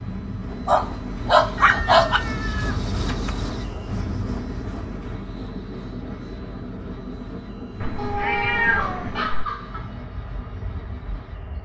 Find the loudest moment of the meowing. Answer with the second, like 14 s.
9 s.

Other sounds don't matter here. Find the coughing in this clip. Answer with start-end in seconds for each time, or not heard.
not heard.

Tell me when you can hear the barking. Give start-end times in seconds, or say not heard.
0.7-2.2, 8.0-9.9.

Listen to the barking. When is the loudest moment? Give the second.
2 s.